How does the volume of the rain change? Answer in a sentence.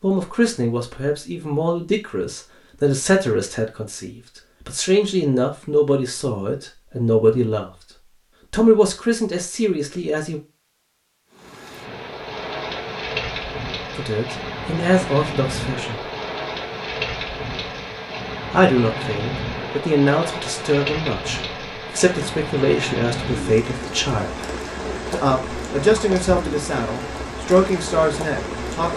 The volume of the rain stays about the same.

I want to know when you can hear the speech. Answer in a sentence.
The speech can be heard from 0.0 to 7.7 s, from 8.5 to 10.4 s, from 13.9 to 16.0 s, from 18.5 to 24.4 s and from 25.1 to 28.9 s.